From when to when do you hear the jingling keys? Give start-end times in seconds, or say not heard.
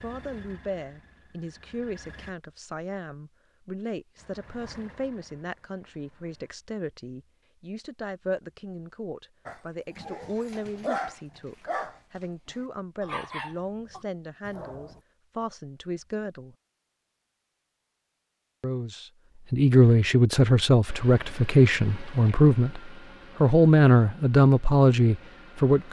not heard.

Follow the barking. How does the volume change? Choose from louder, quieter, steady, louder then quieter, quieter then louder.
louder then quieter.